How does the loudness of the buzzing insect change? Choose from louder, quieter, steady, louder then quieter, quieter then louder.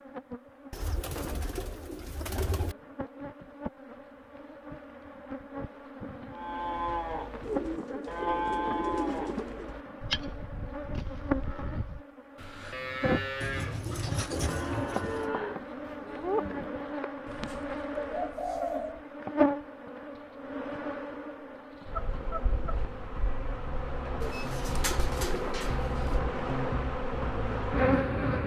louder.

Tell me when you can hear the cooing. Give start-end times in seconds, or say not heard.
0.7-2.8, 7.4-9.8, 13.4-15.3, 17.2-19.0, 24.2-26.2.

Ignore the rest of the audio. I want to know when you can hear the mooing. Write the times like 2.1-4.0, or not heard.
6.3-16.9.